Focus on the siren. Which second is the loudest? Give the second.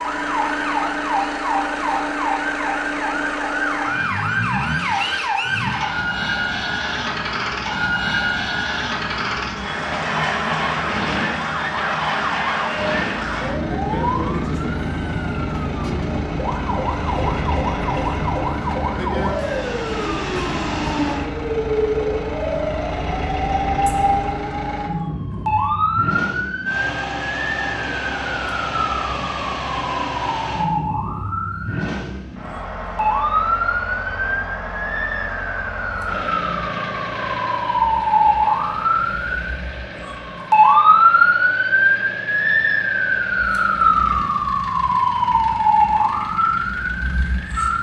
41 s.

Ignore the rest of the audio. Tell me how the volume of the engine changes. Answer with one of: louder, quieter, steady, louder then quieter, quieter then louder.
quieter.